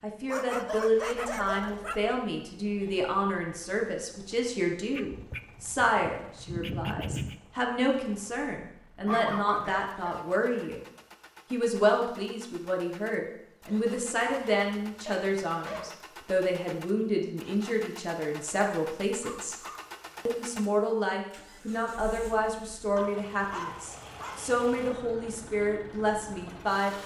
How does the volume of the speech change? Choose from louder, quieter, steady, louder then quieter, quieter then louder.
steady.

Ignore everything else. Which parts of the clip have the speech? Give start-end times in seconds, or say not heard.
0.0-10.8, 11.5-19.6, 20.2-27.0.